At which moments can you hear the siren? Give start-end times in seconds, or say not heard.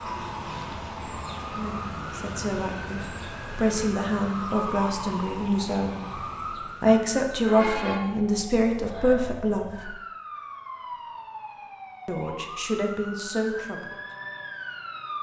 0.0-15.1.